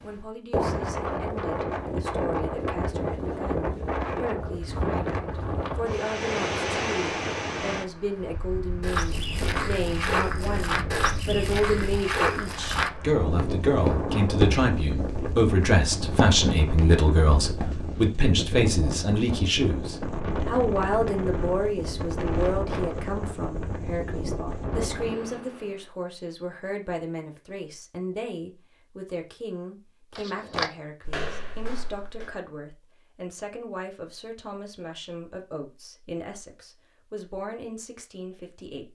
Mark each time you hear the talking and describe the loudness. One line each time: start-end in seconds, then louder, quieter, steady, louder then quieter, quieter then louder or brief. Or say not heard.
0.0-38.9 louder then quieter.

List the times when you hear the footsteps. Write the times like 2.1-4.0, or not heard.
8.8-18.1, 30.1-32.4.